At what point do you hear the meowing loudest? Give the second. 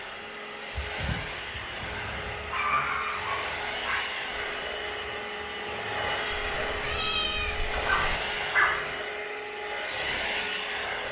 7 s.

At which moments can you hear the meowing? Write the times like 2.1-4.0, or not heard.
0.7-2.4, 6.3-8.2.